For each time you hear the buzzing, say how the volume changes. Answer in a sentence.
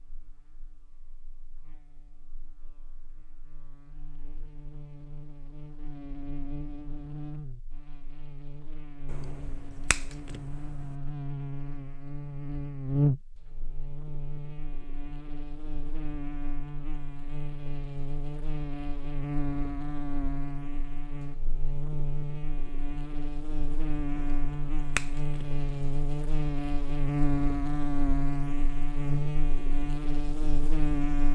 You can hear the buzzing from 0.0 to 31.3 s, getting louder.